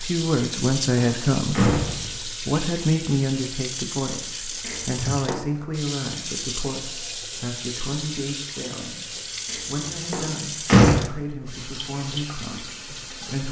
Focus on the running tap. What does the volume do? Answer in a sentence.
The volume of the running tap stays about the same.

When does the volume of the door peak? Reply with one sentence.
The loudest moment of the door is at 11 seconds.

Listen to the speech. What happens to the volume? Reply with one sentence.
The loudness of the speech goes down.